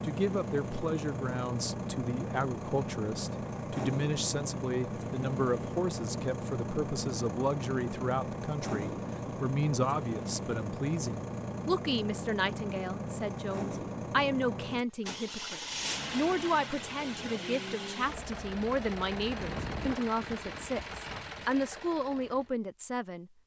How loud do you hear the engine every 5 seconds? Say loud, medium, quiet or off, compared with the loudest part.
loud, loud, loud, loud, medium.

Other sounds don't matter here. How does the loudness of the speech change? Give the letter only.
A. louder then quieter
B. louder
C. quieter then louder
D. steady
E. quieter
D.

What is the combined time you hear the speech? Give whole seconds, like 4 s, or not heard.
23 s.